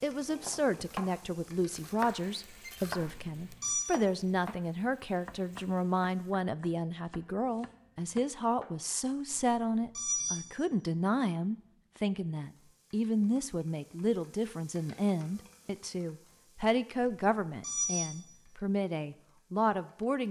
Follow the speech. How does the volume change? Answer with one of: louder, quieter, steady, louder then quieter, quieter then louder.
steady.